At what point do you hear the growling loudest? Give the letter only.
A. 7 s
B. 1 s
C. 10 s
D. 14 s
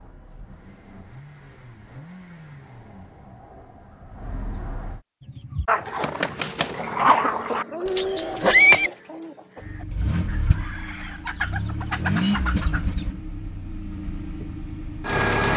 A.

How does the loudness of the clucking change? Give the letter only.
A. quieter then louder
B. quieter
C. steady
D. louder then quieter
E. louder
A.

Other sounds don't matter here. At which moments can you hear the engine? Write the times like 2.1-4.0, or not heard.
0.0-5.0, 9.6-15.5.